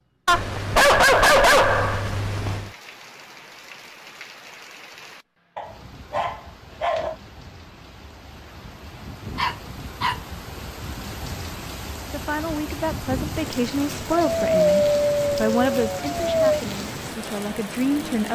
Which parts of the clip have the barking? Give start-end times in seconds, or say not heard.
0.2-2.7, 5.5-7.2, 9.3-10.2, 14.2-16.4.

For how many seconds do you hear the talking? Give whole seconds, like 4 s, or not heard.
6 s.